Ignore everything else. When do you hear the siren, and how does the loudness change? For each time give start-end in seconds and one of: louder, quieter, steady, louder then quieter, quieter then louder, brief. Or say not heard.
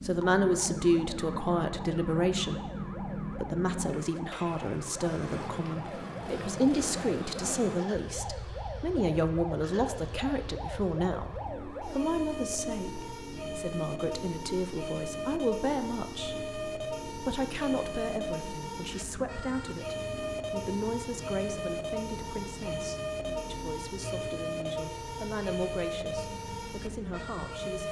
0.0-27.8 louder.